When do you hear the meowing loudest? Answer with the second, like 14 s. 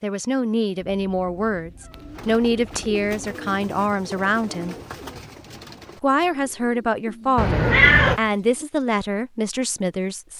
8 s.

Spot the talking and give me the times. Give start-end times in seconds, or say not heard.
0.0-4.8, 6.0-10.3.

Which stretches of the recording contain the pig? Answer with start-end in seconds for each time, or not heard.
not heard.